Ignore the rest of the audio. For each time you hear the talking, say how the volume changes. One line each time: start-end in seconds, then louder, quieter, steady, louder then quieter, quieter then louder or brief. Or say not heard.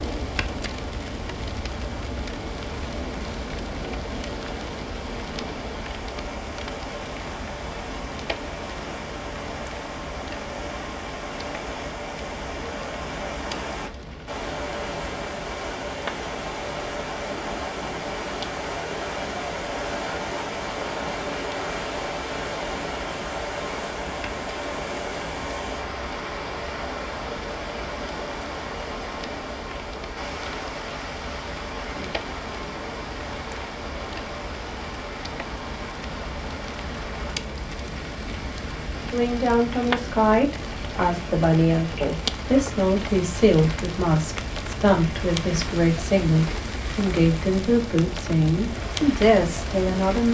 39.1-50.2 steady.